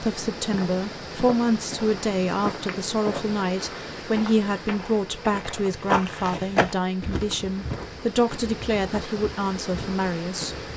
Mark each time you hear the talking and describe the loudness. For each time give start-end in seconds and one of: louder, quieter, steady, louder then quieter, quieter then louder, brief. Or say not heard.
0.0-10.6 steady.